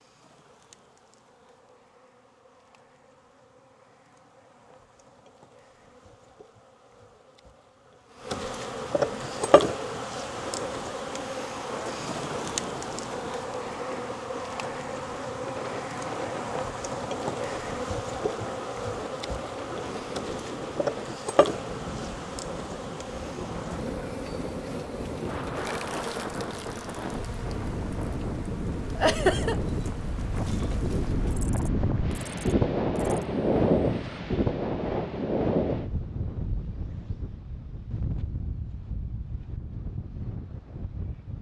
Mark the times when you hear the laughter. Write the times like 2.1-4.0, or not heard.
28.9-29.6.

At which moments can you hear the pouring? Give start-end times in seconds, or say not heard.
not heard.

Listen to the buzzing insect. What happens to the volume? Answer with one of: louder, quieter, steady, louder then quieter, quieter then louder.
louder then quieter.